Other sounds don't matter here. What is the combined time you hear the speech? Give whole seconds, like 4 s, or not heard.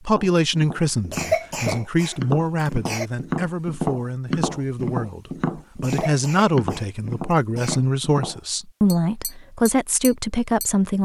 11 s.